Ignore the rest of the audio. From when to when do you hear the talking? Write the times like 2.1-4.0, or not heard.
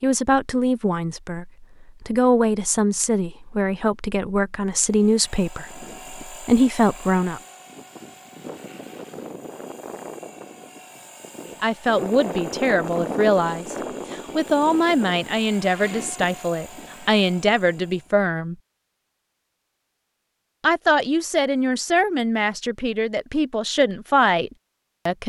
0.0-7.4, 11.5-18.6, 20.6-25.2.